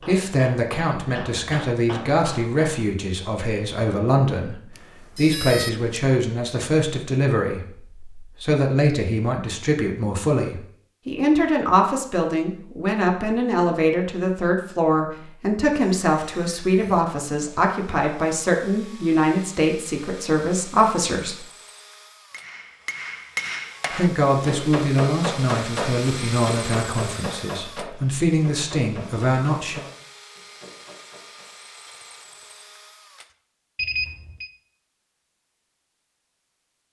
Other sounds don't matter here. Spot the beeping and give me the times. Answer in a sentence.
The beeping can be heard from 5.2 to 5.8 s and from 33.8 to 34.5 s.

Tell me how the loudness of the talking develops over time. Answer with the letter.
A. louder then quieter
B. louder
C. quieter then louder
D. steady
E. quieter
D.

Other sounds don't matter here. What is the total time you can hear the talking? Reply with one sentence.
You can hear the talking for 27 seconds altogether.